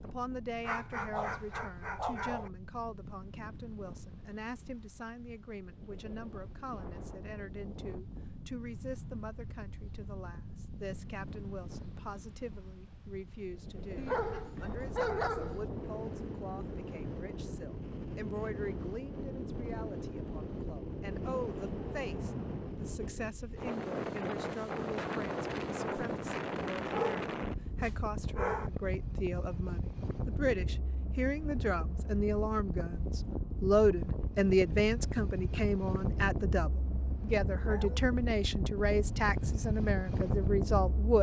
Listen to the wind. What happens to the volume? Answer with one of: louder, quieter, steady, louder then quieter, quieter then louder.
louder.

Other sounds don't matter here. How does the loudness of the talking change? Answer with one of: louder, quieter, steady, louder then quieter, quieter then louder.
louder.